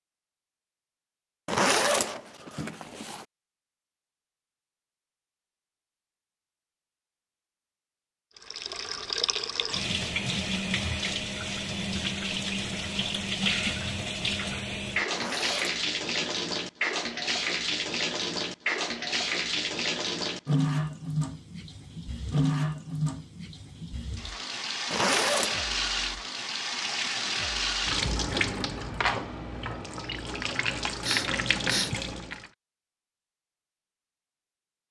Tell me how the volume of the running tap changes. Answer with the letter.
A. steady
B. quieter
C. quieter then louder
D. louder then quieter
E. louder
A.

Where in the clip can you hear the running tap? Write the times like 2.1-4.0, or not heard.
8.3-32.5.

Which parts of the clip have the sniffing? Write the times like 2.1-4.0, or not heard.
31.0-31.9.